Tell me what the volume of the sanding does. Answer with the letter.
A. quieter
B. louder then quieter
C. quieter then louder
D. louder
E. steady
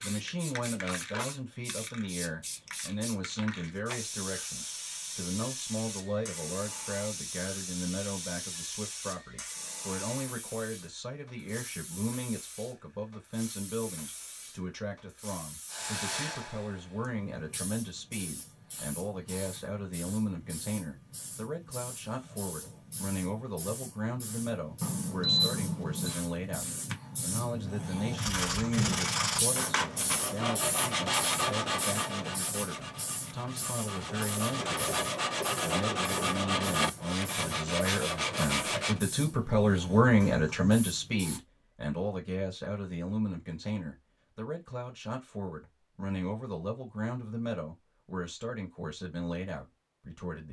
C.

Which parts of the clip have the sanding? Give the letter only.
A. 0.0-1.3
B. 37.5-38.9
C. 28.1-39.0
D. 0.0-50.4
C.